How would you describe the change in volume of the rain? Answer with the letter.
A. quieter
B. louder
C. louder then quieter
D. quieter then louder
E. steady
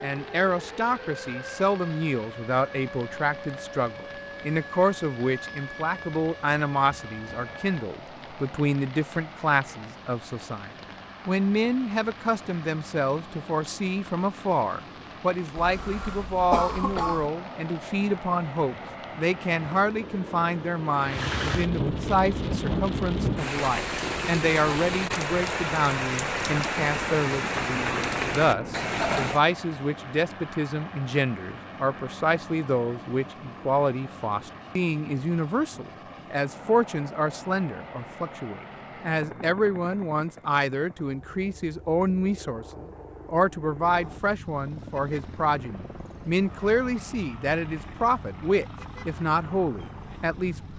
B.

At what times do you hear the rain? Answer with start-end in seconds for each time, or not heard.
0.0-29.4.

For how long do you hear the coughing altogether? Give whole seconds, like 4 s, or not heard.
2 s.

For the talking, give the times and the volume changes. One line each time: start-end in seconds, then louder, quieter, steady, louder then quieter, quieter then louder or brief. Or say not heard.
0.0-50.7 steady.